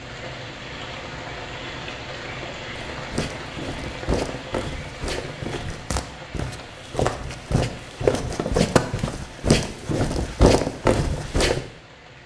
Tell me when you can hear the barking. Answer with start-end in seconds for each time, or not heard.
not heard.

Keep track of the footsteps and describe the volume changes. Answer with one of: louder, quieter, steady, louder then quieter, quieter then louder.
louder.